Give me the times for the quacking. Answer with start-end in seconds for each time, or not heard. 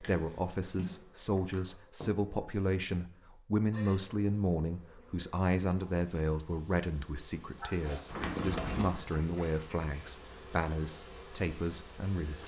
7.6-9.8.